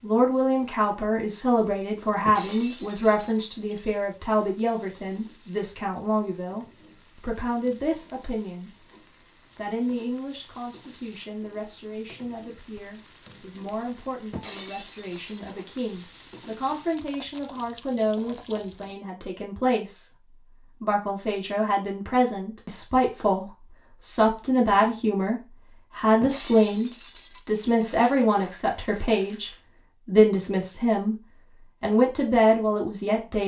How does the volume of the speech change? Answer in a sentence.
The loudness of the speech goes down, then up.